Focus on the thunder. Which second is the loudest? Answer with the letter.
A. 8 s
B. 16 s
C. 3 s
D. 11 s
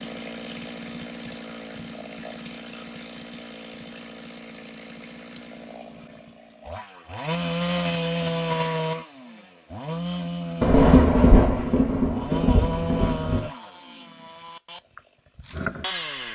D.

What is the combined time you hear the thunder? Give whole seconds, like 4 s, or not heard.
3 s.